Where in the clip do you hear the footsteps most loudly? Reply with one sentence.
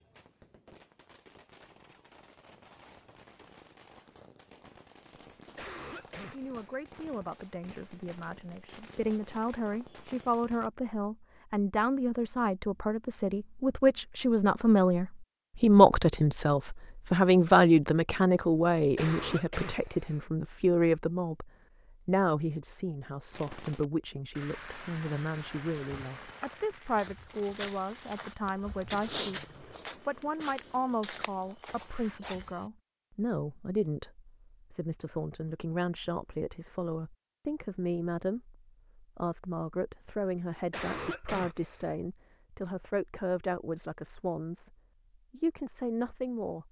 The loudest moment of the footsteps is at 29 seconds.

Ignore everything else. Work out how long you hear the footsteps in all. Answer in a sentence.
You can hear the footsteps for 7 seconds altogether.